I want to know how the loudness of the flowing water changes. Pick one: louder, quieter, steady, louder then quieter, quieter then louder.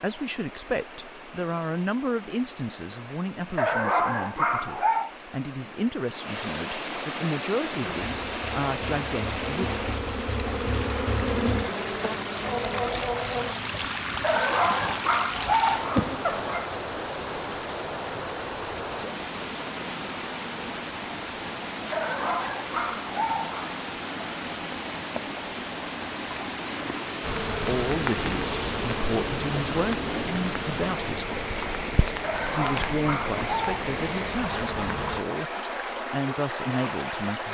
louder.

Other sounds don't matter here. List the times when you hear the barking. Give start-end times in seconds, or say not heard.
3.5-5.1, 14.2-16.7, 21.9-23.7, 32.2-33.8.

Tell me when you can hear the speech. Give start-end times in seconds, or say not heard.
0.0-9.7, 27.6-37.4.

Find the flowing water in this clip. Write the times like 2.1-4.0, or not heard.
0.0-37.4.